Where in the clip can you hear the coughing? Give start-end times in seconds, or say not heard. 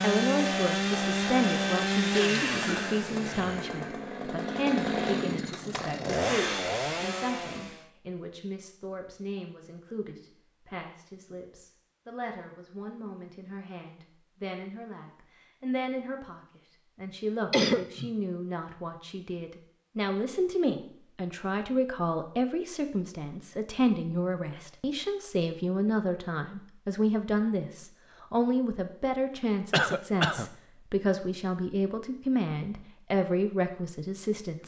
2.5-3.8, 17.5-18.1, 29.7-30.4.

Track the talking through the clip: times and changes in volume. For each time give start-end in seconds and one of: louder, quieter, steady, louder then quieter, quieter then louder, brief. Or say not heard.
0.0-34.6 quieter then louder.